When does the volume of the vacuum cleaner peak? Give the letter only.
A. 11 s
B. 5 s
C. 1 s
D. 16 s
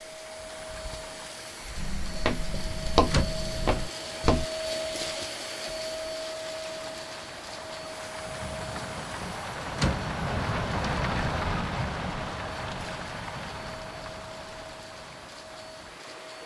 B.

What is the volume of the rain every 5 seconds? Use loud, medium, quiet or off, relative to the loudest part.
quiet, medium, loud, quiet.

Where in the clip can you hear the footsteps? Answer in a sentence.
You can hear the footsteps from 1.8 to 4.5 s.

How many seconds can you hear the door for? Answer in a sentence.
The door can be heard for 2 seconds in total.